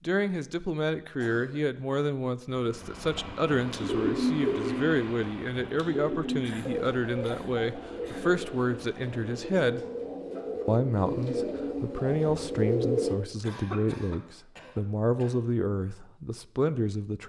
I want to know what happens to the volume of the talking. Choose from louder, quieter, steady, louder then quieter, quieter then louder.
steady.